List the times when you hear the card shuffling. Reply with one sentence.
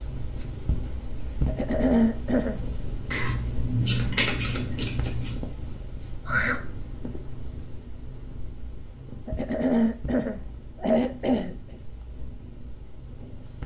The card shuffling can be heard from 3.1 to 5.4 s.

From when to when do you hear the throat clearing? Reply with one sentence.
The throat clearing can be heard from 1.4 to 2.6 s, from 6.2 to 6.7 s and from 9.2 to 11.6 s.